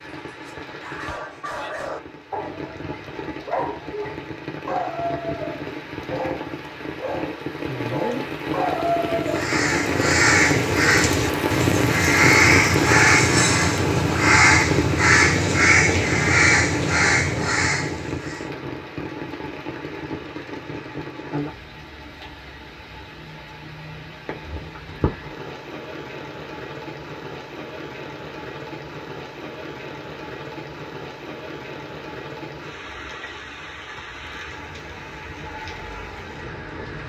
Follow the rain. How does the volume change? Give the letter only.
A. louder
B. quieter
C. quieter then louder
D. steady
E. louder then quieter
E.